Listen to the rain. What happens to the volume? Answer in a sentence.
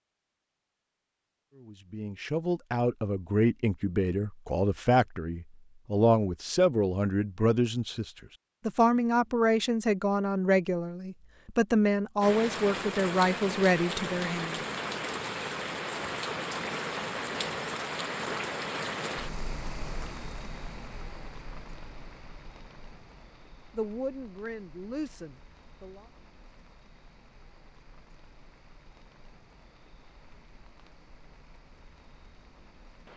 The volume of the rain goes down.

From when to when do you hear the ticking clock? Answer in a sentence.
You can't hear the ticking clock here.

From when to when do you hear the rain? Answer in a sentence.
The rain can be heard from 12.2 to 33.1 s.